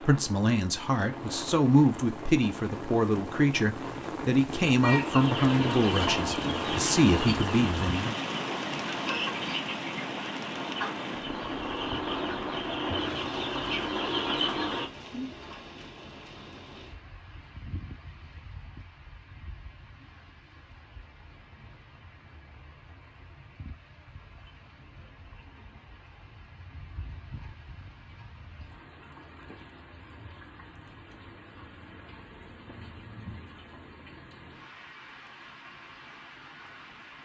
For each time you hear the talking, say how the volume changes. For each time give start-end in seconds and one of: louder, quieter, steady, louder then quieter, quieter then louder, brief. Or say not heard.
0.0-8.2 steady.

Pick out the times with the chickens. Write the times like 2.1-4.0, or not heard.
4.8-14.9.